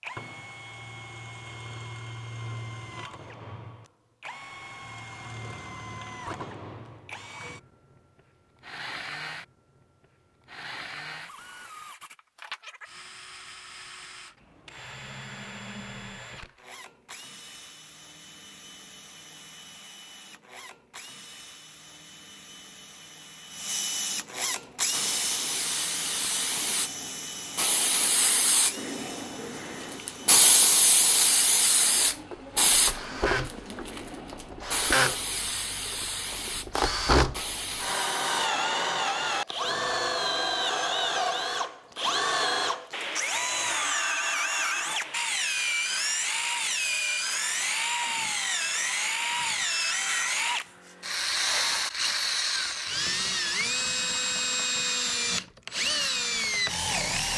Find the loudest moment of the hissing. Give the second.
31 s.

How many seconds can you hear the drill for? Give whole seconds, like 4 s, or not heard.
57 s.